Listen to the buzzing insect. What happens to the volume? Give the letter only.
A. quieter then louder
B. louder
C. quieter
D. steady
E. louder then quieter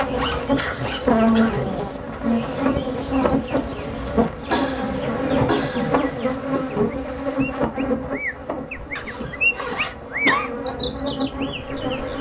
C.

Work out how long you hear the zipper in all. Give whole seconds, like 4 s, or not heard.
3 s.